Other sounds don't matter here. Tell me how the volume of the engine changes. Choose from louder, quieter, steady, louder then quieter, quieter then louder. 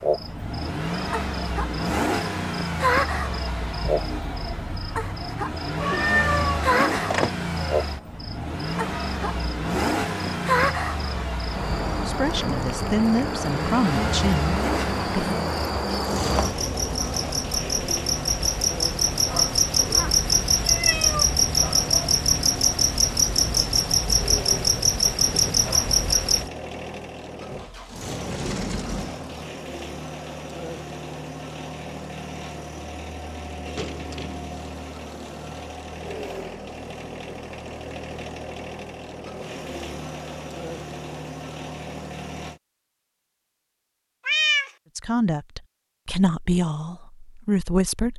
quieter.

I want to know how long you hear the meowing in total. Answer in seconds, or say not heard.
3 s.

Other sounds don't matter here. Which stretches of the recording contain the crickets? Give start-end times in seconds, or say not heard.
0.0-26.4.